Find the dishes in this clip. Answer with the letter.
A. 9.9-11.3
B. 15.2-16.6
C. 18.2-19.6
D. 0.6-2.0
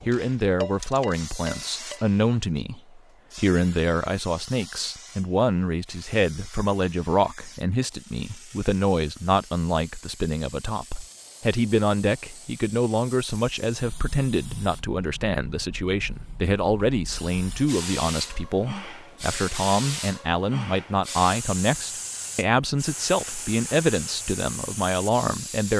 D.